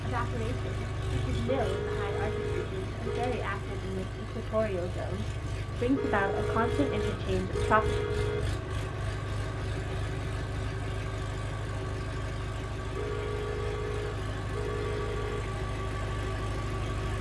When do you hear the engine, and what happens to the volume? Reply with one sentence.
The engine can be heard from 0.0 to 17.1 s, at a steady volume.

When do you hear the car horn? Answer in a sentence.
The car horn can be heard from 1.4 to 3.4 s, from 5.9 to 8.4 s and from 12.9 to 15.4 s.